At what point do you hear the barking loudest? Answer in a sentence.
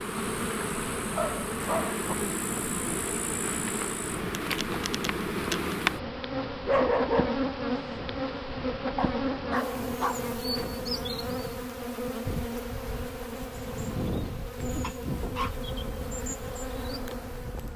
The volume of the barking peaks at 7 seconds.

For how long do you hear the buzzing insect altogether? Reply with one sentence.
The buzzing insect can be heard for 18 seconds in total.